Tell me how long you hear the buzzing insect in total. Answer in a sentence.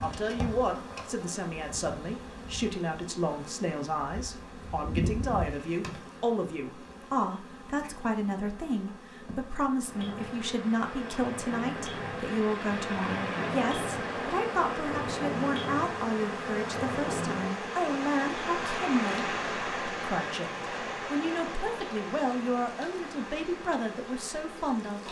You can hear the buzzing insect for 25 seconds altogether.